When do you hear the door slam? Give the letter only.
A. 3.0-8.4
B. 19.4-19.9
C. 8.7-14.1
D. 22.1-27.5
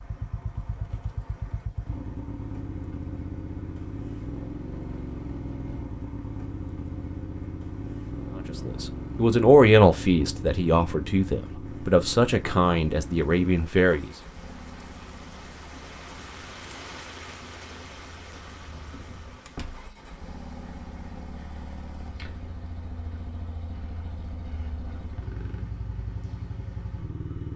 B.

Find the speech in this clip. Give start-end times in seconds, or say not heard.
8.7-14.1.